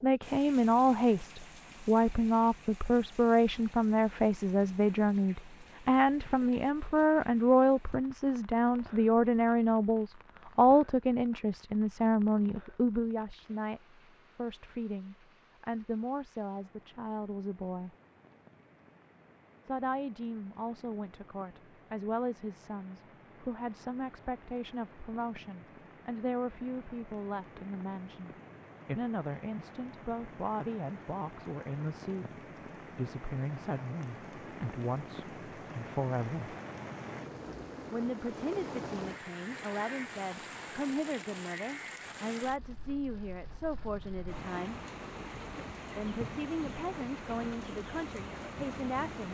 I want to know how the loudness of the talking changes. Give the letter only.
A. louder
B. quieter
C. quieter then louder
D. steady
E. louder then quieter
B.